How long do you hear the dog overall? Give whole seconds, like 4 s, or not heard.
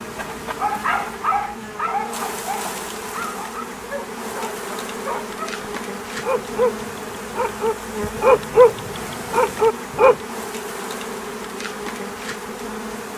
10 s.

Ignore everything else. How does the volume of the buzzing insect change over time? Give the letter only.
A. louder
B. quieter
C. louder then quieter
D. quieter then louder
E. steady
E.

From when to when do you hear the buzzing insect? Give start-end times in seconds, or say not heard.
0.0-13.1.